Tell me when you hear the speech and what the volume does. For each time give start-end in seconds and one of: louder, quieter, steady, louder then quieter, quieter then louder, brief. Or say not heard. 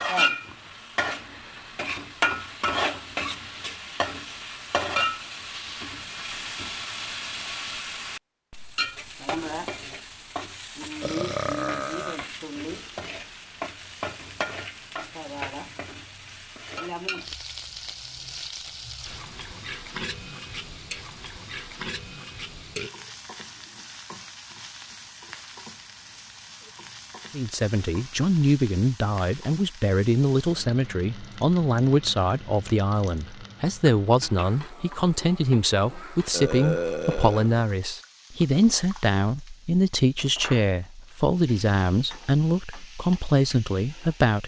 27.3-44.4 steady.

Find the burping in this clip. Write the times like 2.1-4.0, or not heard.
11.0-12.2, 22.8-23.9, 36.3-37.5.